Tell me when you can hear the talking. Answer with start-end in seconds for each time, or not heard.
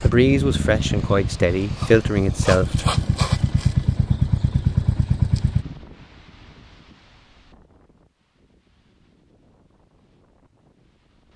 0.0-2.9.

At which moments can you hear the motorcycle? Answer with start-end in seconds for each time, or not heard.
0.0-5.8.